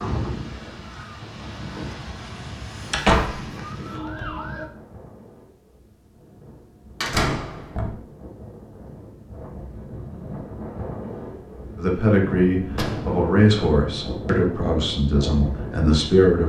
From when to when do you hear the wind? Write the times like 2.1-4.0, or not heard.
0.0-16.4.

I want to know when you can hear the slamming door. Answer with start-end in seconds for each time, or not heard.
2.9-3.5, 7.0-8.0, 12.7-13.4.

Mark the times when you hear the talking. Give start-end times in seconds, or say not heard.
11.8-16.4.